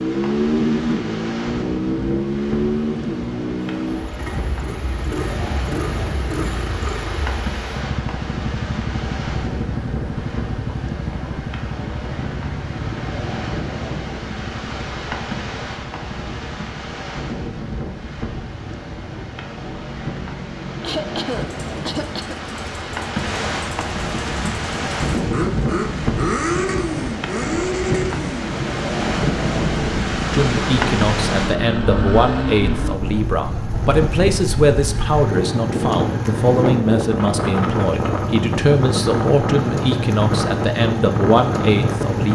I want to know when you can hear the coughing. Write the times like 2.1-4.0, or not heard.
20.8-22.4.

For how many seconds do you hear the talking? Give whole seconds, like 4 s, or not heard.
12 s.